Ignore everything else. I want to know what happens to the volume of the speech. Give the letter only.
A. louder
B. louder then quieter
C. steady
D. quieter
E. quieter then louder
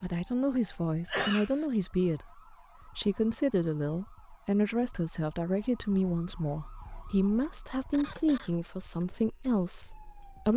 C.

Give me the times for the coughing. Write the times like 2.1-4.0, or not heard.
1.1-1.6, 7.9-9.1.